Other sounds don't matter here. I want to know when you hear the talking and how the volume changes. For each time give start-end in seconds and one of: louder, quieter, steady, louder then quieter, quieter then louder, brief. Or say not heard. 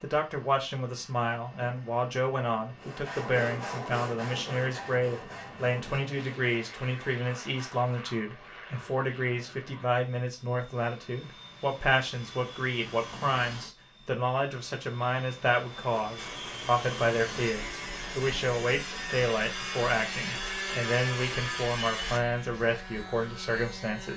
0.0-24.1 steady.